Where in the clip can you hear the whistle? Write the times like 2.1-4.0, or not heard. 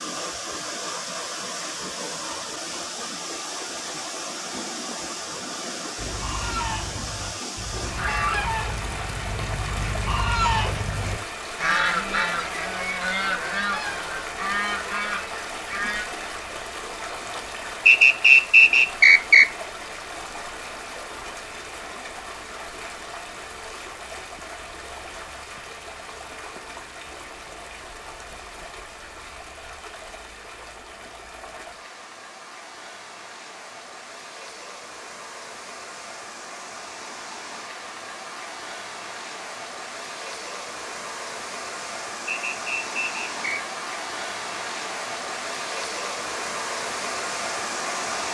17.9-19.4, 42.2-43.6.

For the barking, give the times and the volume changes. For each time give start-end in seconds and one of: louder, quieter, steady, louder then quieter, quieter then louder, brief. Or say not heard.
not heard.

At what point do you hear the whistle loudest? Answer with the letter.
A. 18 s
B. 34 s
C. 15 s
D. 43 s
A.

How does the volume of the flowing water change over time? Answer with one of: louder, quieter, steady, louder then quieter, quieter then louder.
quieter then louder.